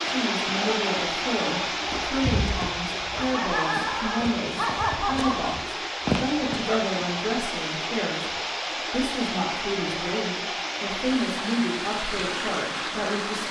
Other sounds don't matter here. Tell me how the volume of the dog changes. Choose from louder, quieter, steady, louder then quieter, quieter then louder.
louder.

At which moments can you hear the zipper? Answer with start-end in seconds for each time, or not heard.
not heard.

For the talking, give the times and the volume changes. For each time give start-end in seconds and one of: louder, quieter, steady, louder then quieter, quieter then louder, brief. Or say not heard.
0.0-13.4 steady.